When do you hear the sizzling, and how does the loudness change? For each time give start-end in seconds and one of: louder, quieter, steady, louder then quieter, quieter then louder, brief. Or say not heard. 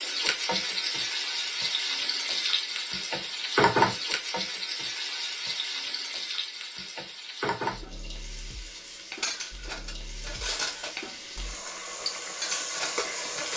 0.0-13.5 quieter then louder.